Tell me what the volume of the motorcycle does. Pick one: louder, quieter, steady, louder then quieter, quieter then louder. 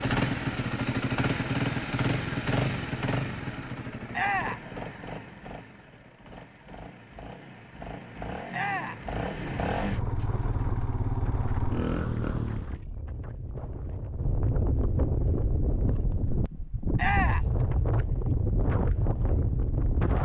quieter then louder.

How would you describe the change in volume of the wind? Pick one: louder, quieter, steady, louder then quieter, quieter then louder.
louder.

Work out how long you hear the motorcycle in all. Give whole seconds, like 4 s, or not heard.
13 s.